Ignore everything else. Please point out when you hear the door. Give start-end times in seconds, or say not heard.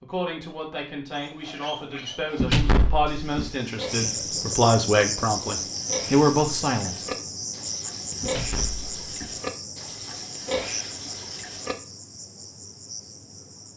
2.4-3.5, 8.2-9.4.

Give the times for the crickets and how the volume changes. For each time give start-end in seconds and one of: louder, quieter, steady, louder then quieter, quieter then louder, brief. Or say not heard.
3.9-13.7 quieter.